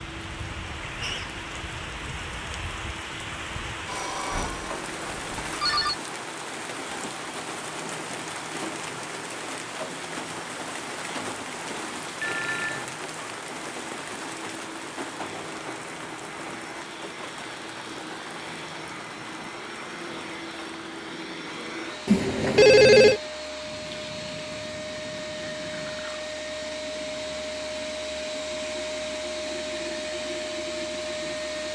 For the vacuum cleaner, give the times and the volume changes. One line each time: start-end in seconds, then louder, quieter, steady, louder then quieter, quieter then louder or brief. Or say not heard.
0.0-31.6 louder.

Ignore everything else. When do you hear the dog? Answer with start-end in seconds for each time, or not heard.
not heard.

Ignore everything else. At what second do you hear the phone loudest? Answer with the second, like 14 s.
23 s.